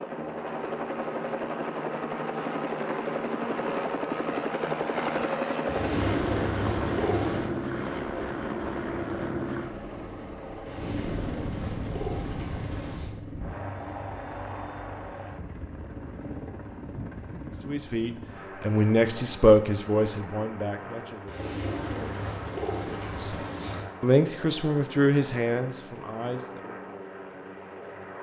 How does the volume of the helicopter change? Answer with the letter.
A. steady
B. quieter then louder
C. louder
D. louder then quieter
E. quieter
E.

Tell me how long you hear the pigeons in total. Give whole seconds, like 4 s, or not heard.
7 s.